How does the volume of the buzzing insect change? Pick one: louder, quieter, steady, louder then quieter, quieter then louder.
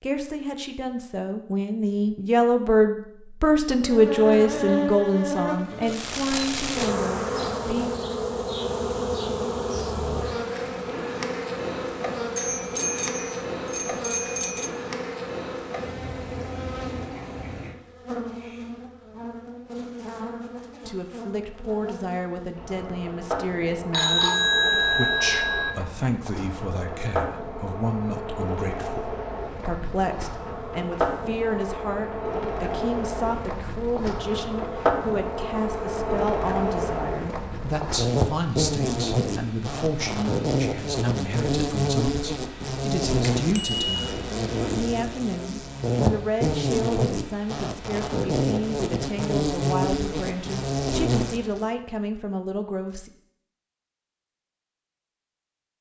quieter then louder.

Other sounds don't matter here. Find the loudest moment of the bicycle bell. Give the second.
25 s.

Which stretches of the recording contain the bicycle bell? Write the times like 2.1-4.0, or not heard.
12.3-14.7, 23.9-25.7, 43.2-43.9.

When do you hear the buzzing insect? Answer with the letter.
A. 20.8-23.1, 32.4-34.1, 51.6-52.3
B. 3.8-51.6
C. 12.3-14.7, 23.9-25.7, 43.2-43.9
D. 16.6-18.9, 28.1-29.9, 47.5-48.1
B.